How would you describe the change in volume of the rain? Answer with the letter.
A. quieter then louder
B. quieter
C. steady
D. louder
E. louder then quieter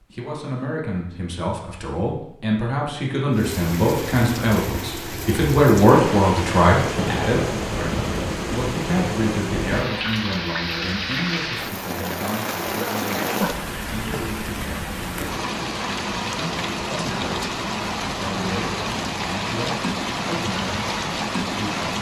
C.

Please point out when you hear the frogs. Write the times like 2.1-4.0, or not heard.
not heard.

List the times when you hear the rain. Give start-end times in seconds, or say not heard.
3.3-21.9.